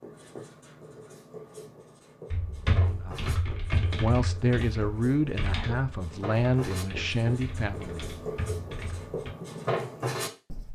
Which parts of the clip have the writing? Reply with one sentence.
You can hear the writing from 0.0 to 10.6 s.